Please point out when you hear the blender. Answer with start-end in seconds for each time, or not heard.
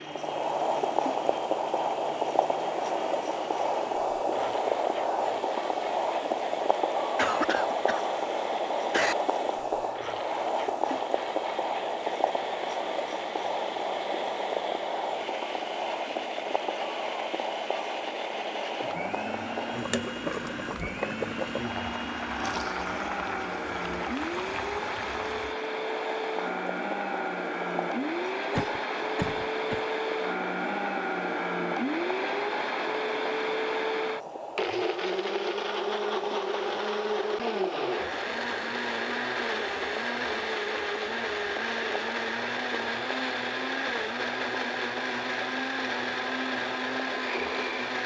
0.0-48.0.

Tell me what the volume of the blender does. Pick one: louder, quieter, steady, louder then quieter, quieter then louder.
louder.